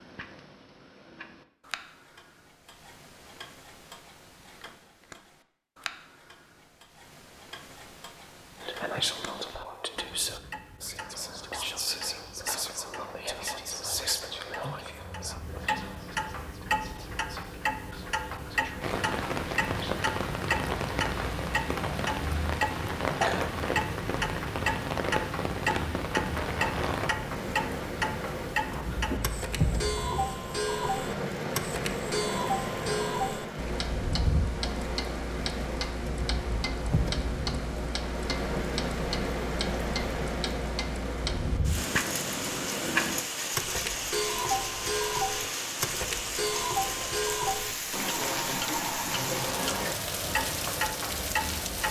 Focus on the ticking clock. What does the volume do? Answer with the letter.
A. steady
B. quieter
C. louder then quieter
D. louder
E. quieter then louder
D.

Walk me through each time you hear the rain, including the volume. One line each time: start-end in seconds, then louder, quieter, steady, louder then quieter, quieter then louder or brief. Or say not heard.
18.8-51.8 steady.